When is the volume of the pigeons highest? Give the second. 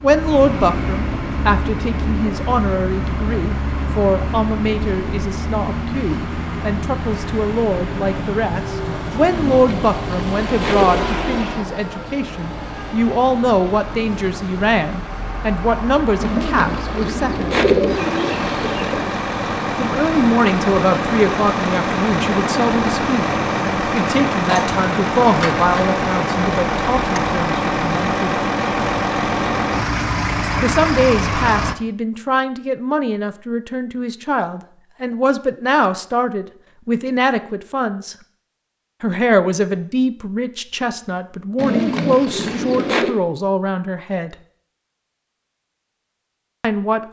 18 s.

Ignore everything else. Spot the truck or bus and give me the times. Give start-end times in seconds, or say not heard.
0.0-31.8.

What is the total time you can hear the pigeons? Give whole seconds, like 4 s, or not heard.
7 s.